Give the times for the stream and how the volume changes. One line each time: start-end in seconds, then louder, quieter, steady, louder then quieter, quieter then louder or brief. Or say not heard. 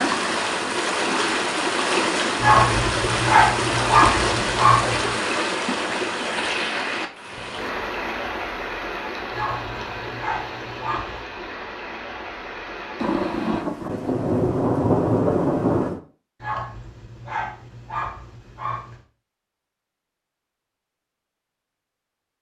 0.0-13.7 quieter.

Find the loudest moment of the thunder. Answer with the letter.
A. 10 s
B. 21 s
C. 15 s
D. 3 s
C.